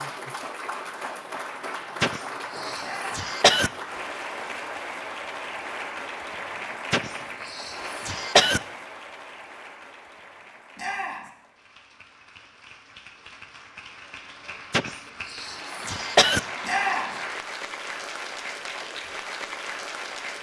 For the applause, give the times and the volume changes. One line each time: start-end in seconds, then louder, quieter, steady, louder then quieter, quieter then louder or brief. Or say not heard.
0.0-20.3 quieter then louder.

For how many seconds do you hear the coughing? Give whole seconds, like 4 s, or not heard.
5 s.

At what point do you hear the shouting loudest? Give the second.
17 s.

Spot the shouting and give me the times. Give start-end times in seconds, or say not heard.
2.8-3.2, 10.8-11.3, 16.6-17.1.